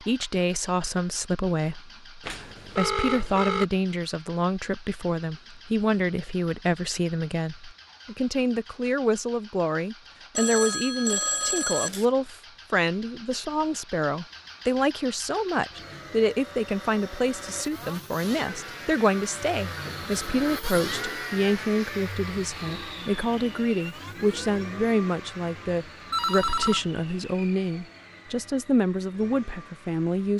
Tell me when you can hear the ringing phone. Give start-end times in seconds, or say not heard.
2.2-3.6, 10.3-12.1, 26.1-26.9.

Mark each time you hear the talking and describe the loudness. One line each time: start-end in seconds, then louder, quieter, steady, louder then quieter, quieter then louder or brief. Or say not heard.
0.0-30.3 steady.